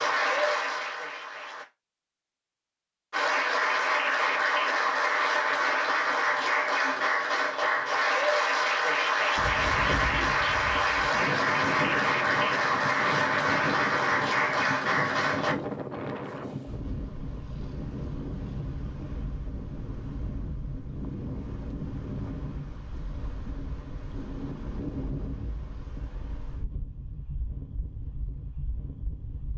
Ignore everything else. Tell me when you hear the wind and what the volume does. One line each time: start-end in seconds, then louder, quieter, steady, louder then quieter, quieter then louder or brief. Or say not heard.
9.3-29.5 quieter.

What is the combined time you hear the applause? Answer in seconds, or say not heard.
14 s.